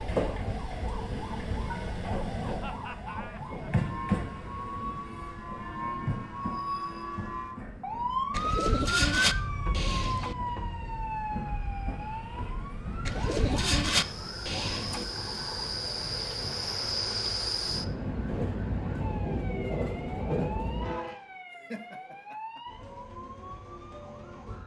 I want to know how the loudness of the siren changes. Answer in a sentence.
The loudness of the siren goes up, then down.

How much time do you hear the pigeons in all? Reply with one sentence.
The pigeons can be heard for 4 seconds in total.